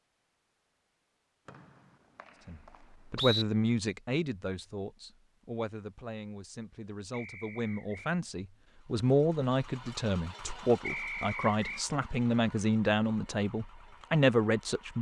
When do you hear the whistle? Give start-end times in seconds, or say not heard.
1.4-3.5, 7.1-8.1, 10.8-11.8.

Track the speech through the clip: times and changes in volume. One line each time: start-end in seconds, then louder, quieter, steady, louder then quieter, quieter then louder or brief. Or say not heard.
2.5-14.9 quieter then louder.